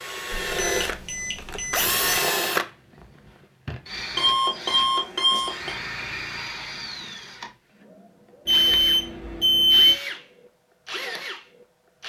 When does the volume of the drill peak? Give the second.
2 s.